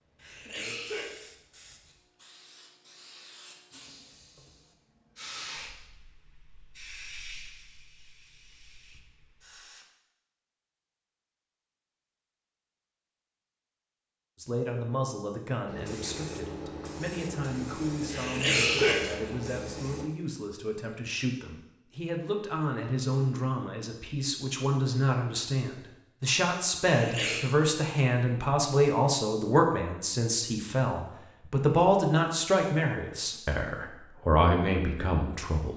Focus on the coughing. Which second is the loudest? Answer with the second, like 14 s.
19 s.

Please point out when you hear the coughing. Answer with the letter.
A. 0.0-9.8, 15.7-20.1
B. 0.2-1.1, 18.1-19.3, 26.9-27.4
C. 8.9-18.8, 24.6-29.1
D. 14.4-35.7
B.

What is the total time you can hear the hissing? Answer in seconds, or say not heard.
14 s.